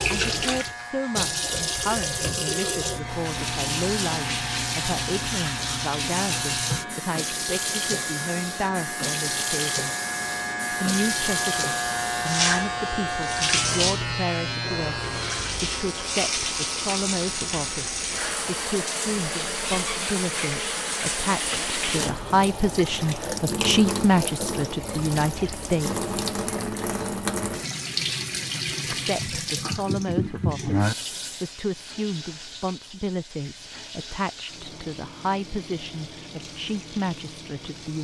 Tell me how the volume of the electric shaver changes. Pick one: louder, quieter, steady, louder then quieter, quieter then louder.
louder then quieter.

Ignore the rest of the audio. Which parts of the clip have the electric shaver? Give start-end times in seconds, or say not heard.
0.0-18.6.